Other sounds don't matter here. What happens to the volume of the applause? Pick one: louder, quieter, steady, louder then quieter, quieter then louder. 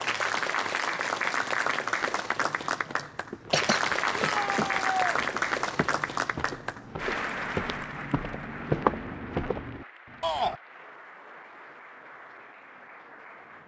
quieter.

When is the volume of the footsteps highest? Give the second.
9 s.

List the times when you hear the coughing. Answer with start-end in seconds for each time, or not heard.
3.5-4.7.